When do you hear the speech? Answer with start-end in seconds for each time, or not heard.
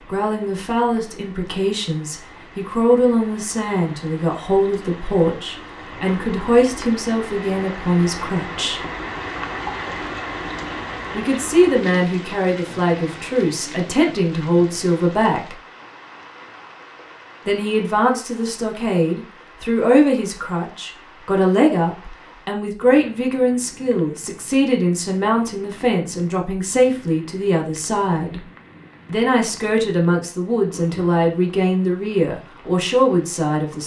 0.1-8.8, 11.1-15.6, 17.4-28.4, 29.1-33.8.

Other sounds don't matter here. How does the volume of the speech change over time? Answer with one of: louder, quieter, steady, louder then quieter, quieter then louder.
steady.